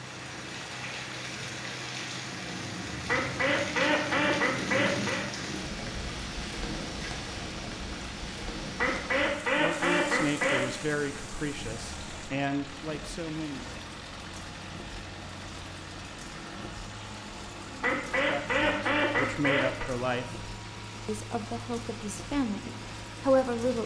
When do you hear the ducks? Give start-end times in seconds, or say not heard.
3.0-5.2, 8.8-10.6, 17.8-19.9.